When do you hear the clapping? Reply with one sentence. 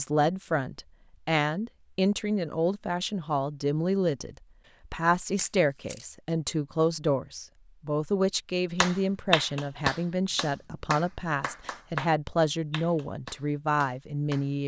You can hear the clapping from 8.8 to 14.4 s.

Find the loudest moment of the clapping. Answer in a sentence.
The volume of the clapping peaks at 9 seconds.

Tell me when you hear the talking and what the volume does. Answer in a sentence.
You can hear the talking from 0.0 to 14.6 s, at a steady volume.